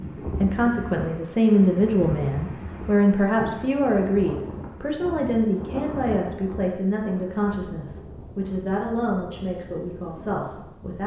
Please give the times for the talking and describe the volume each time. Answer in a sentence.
You can hear the talking from 0.0 to 11.0 s, getting quieter.